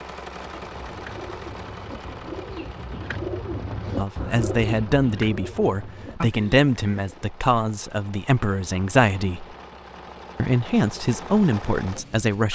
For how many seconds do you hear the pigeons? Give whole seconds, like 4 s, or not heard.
7 s.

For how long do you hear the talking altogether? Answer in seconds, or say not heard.
8 s.